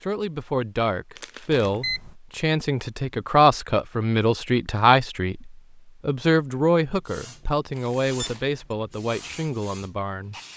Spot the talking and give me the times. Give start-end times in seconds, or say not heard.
0.0-10.3.